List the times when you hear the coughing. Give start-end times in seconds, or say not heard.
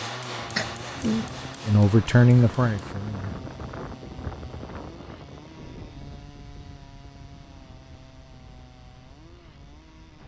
0.6-1.4.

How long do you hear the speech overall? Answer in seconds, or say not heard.
2 s.